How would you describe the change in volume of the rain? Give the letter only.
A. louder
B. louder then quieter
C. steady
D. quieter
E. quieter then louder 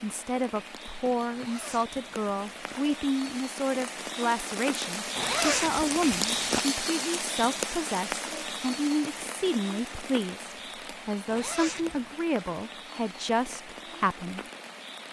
B.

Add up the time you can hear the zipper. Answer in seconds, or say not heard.
4 s.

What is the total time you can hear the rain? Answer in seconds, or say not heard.
15 s.